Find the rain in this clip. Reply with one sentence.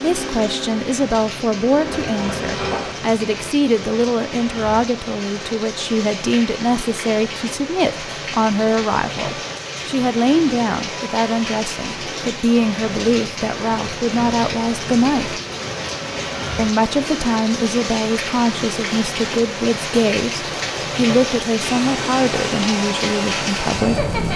The rain can be heard from 0.0 to 24.3 s.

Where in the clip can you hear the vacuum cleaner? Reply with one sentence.
The vacuum cleaner can be heard from 0.0 to 3.0 s and from 21.6 to 24.3 s.